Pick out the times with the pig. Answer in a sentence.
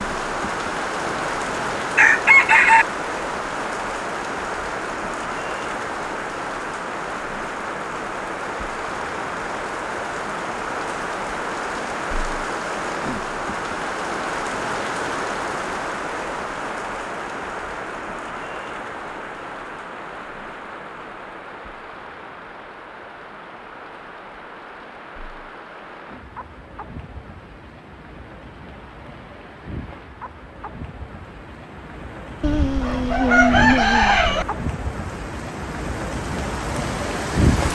The pig can't be heard in this clip.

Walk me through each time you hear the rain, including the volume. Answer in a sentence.
The rain can be heard from 0.0 to 37.6 s, getting quieter then louder.